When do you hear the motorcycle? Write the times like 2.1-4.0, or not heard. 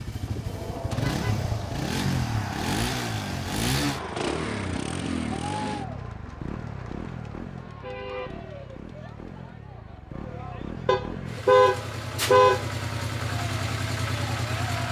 0.0-14.8.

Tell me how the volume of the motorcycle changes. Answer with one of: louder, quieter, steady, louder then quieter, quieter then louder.
quieter then louder.